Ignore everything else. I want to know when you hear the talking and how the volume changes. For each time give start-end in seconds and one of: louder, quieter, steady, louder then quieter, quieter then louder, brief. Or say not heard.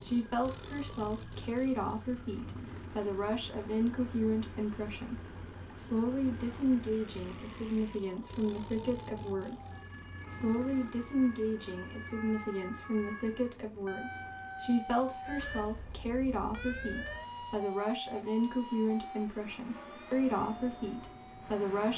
0.0-21.9 steady.